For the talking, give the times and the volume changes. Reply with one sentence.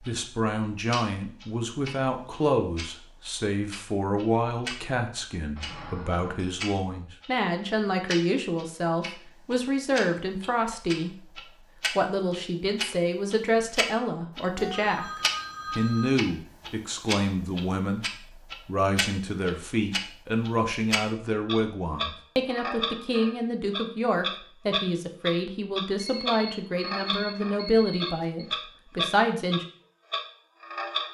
The talking can be heard from 0.0 to 29.6 s, at a steady volume.